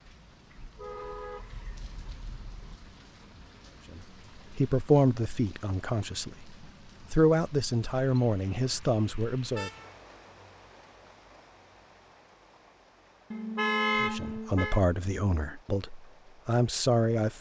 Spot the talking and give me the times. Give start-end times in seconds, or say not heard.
3.9-6.5, 7.1-9.7, 13.9-17.3.